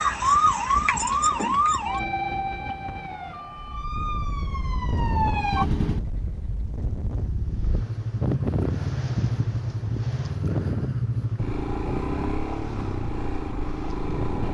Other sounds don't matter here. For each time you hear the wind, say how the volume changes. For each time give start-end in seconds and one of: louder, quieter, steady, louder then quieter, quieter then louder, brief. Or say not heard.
0.0-14.5 louder then quieter.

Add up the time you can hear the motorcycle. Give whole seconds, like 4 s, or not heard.
9 s.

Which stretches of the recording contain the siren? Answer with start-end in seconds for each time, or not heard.
0.0-5.7.